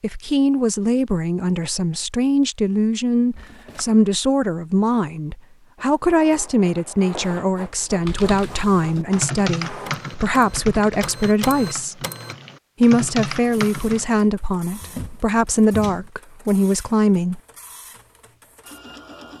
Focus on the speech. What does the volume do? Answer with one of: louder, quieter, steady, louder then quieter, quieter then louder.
steady.